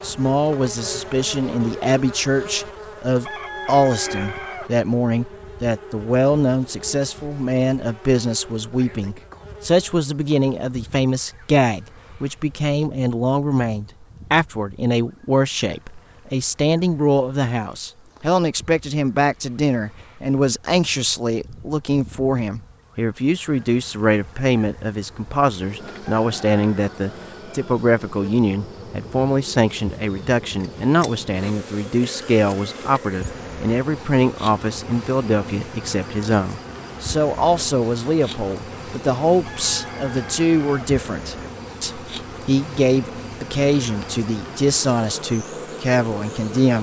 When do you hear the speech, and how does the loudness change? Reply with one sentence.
The speech can be heard from 0.0 to 46.7 s, at a steady volume.